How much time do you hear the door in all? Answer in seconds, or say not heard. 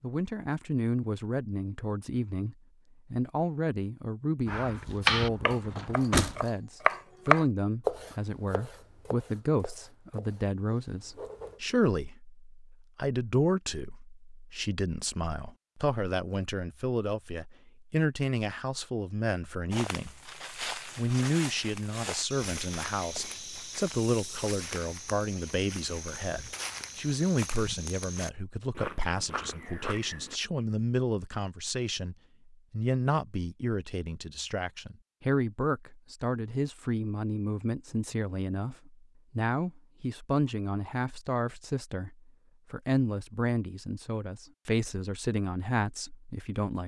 2 s.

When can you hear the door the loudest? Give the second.
6 s.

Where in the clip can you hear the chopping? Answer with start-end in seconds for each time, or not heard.
4.5-11.6.